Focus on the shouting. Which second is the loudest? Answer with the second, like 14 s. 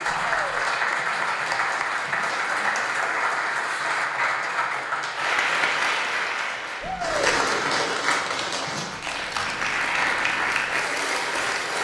7 s.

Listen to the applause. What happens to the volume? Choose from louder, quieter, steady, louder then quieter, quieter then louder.
steady.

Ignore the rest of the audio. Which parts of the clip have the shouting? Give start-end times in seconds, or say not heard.
0.1-0.6, 6.8-7.3.